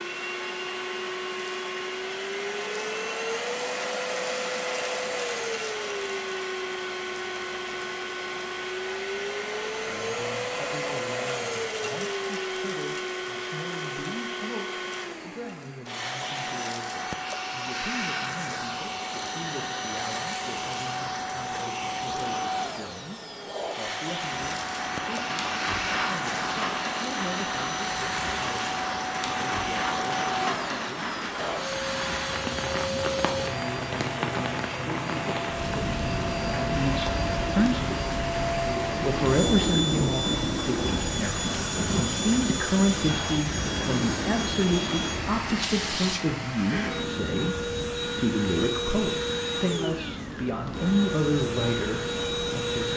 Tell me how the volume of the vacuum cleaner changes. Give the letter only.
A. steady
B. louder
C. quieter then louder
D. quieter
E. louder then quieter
A.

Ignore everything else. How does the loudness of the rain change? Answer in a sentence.
The loudness of the rain goes down.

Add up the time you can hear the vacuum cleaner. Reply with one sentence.
You can hear the vacuum cleaner for 53 seconds altogether.